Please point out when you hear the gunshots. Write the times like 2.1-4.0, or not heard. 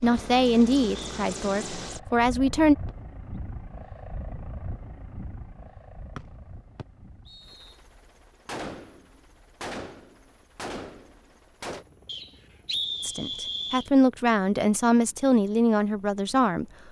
8.4-11.8.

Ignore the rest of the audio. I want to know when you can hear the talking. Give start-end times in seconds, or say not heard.
0.0-2.8, 13.0-16.6.